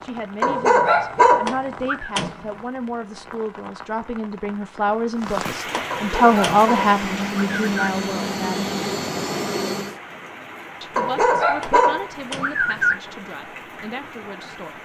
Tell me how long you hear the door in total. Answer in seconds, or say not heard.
3 s.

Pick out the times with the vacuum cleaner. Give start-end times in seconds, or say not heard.
6.1-10.0.